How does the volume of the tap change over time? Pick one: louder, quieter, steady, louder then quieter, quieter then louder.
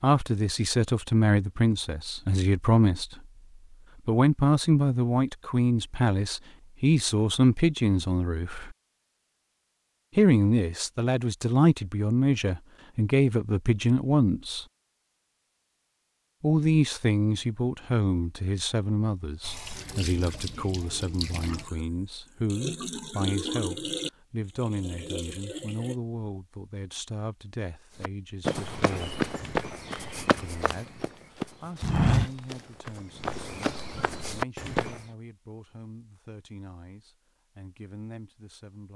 louder then quieter.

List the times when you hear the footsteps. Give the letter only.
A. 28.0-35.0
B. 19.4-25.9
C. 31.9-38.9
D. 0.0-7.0
A.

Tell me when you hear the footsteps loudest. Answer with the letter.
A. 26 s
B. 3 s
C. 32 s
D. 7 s
C.